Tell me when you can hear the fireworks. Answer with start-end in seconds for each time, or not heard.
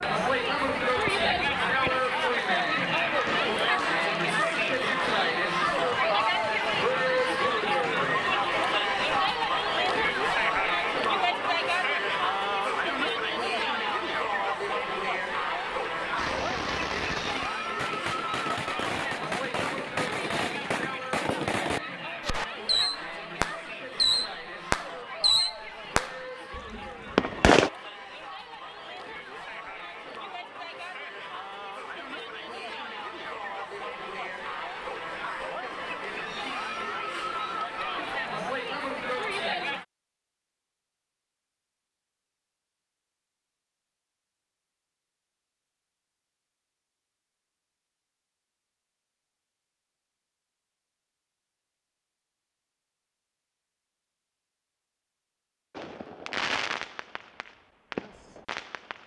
0.0-9.3, 16.1-27.7, 55.7-59.0.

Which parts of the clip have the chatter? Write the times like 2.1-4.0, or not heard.
0.0-39.9.